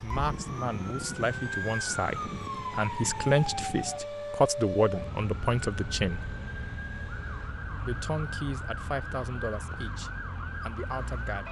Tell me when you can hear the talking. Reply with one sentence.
You can hear the talking from 0.0 to 6.3 s and from 7.8 to 11.4 s.